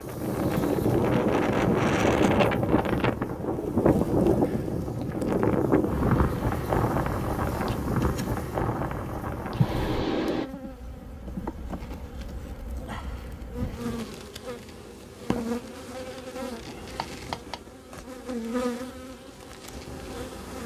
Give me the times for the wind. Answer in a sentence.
You can hear the wind from 0.0 to 10.5 s.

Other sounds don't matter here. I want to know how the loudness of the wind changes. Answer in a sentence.
The loudness of the wind goes down.